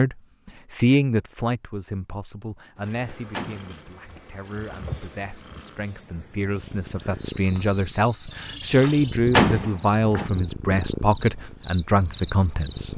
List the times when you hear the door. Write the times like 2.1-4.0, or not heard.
2.8-3.7, 8.8-10.3.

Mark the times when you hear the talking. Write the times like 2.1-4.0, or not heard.
0.0-12.9.